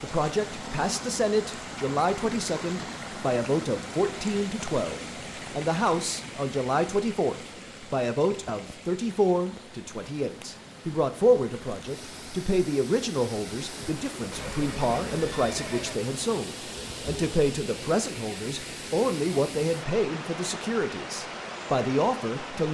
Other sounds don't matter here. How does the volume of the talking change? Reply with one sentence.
The volume of the talking stays about the same.